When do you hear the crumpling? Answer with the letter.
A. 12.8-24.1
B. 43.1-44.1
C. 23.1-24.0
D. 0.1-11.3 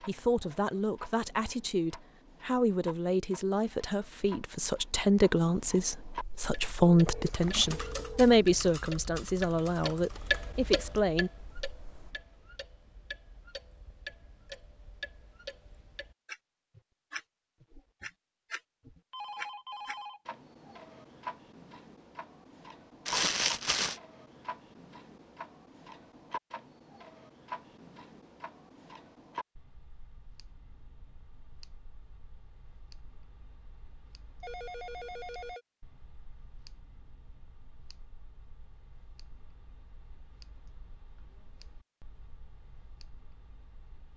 C.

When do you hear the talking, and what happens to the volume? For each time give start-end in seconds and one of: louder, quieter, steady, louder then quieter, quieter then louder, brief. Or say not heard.
0.1-11.3 louder then quieter.